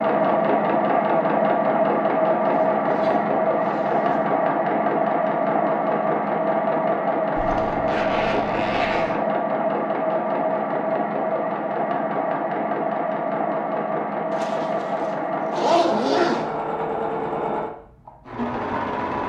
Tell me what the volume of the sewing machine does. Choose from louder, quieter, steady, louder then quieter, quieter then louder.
quieter.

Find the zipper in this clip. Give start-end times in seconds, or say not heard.
2.5-4.3, 7.3-9.2, 14.3-16.4.